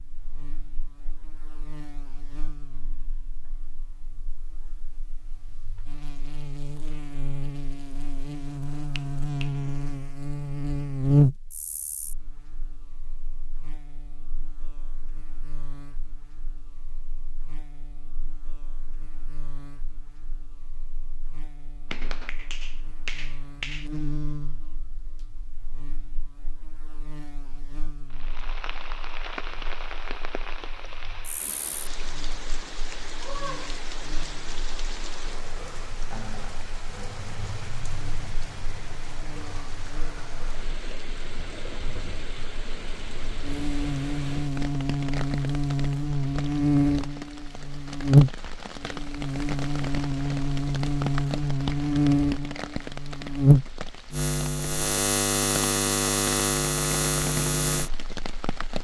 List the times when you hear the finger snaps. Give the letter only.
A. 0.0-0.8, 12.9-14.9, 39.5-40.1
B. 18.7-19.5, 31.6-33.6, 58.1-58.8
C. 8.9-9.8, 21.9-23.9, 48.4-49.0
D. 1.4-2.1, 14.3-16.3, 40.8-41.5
C.